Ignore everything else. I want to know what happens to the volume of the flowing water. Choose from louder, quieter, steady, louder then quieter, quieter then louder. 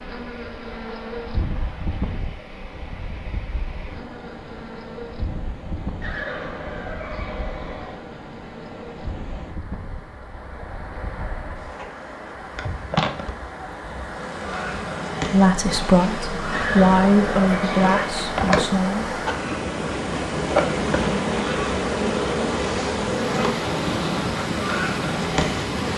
louder.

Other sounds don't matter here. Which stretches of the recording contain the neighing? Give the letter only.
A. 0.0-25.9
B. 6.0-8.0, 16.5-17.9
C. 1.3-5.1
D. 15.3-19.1
B.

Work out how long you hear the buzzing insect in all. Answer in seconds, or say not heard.
26 s.